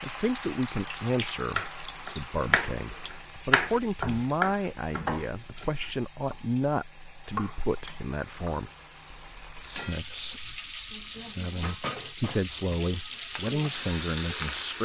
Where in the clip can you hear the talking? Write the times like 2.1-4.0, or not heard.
0.0-14.8.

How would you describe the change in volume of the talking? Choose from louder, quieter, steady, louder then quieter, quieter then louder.
quieter then louder.